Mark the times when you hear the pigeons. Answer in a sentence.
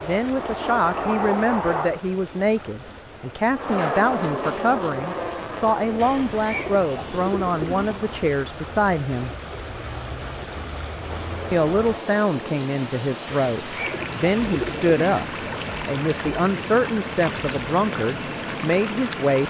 You can hear the pigeons from 6.0 to 8.0 s and from 13.2 to 14.9 s.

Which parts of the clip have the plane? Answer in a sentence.
The plane can be heard from 0.0 to 2.0 s, from 3.5 to 8.2 s and from 11.1 to 19.4 s.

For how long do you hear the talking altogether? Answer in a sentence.
You can hear the talking for 17 seconds altogether.